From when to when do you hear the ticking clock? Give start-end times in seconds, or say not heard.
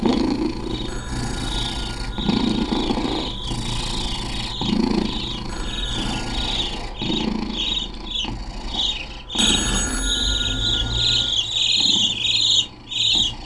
not heard.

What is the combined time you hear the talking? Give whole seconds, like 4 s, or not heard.
not heard.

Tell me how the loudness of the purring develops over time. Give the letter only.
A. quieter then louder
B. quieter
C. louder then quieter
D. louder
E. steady
B.